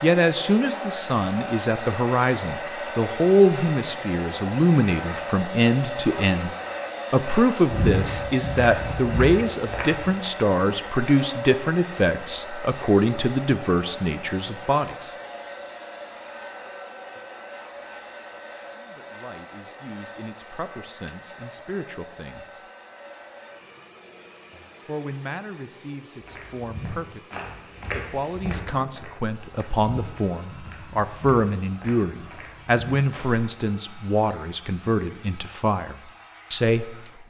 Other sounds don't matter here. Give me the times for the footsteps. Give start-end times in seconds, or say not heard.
7.7-10.1, 26.2-33.5.